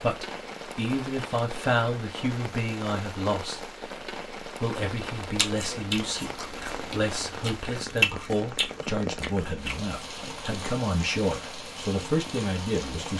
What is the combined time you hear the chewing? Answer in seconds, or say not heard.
5 s.